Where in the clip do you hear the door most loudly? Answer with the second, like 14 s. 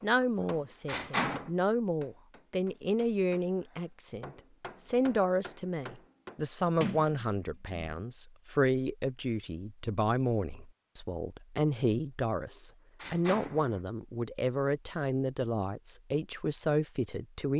1 s.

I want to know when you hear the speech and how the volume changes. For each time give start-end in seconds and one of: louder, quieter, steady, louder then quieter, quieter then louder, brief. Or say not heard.
0.0-17.5 steady.